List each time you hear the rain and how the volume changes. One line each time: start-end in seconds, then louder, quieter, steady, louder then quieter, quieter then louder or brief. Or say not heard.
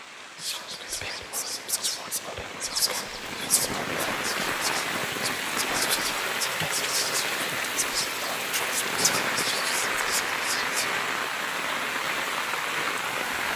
0.0-13.5 louder.